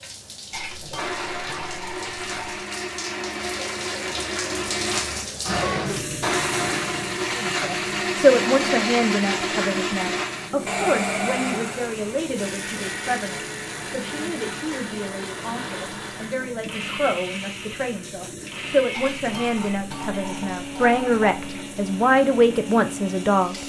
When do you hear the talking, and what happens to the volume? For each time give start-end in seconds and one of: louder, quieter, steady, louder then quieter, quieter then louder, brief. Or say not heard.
7.3-23.6 quieter then louder.